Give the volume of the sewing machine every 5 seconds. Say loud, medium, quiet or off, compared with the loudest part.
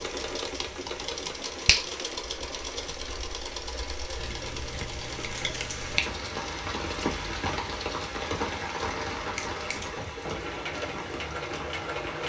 loud, medium, loud.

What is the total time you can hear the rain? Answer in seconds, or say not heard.
12 s.